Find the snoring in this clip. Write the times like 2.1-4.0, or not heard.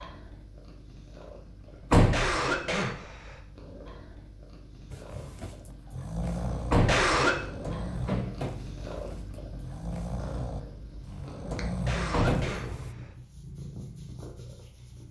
4.9-12.9.